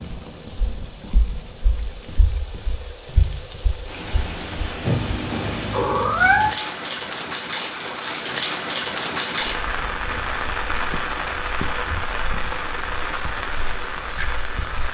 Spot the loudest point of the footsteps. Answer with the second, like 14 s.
3 s.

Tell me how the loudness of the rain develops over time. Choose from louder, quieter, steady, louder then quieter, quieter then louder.
louder.